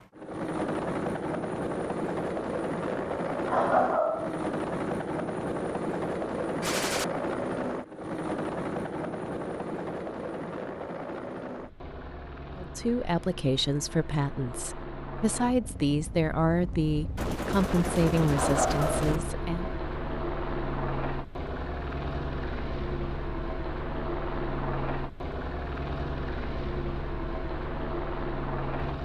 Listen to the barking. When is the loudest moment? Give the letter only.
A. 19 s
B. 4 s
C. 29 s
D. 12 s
B.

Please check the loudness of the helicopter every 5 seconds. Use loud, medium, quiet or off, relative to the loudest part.
loud, loud, medium, medium, loud, loud.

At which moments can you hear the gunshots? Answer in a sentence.
You can hear the gunshots from 6.6 to 7.0 s and from 17.1 to 19.2 s.